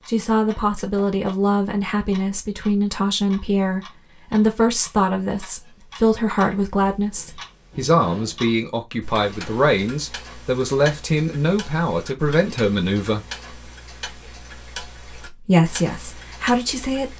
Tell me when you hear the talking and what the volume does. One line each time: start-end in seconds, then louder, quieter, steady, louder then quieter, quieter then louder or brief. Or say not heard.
0.1-13.2 steady
15.2-17.1 brief.